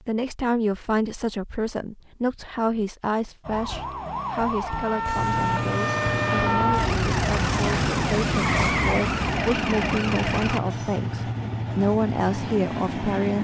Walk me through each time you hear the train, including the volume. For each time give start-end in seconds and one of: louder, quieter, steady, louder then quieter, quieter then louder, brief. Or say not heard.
5.2-13.3 steady.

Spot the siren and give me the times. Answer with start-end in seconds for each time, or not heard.
3.5-10.6.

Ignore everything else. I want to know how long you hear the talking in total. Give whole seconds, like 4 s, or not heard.
13 s.